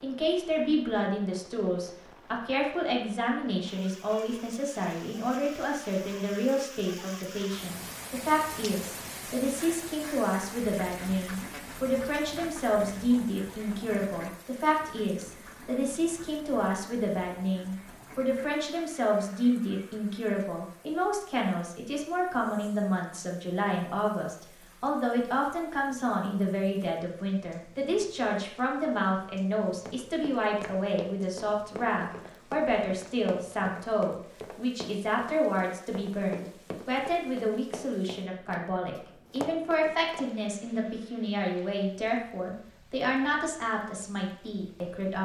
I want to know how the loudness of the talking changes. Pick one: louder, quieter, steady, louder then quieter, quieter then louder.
steady.